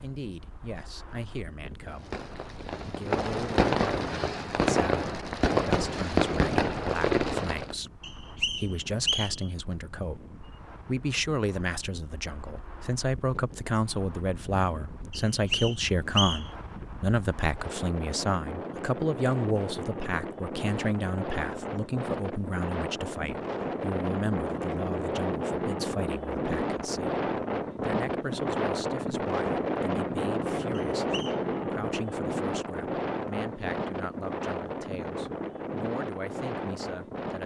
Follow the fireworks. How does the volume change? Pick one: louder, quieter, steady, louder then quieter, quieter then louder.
louder.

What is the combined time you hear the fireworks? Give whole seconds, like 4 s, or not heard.
6 s.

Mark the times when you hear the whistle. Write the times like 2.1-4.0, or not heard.
8.0-9.4, 15.1-16.5, 30.8-31.4.